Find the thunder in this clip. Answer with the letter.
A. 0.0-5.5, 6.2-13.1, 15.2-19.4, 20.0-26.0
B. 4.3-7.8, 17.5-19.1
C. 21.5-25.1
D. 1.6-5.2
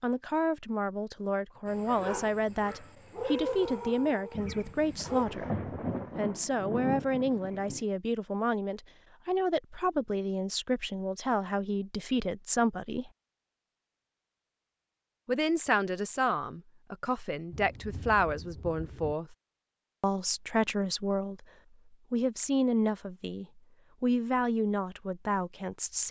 B.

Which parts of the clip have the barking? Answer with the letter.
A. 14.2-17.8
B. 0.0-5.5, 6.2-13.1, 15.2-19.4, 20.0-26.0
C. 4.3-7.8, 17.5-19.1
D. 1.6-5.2
D.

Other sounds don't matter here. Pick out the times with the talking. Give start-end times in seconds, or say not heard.
0.0-5.5, 6.2-13.1, 15.2-19.4, 20.0-26.0.